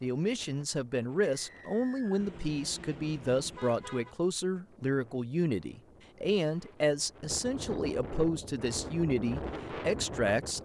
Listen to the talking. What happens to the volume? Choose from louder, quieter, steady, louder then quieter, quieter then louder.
steady.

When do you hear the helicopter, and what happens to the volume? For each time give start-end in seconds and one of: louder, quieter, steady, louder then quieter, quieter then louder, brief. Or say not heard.
not heard.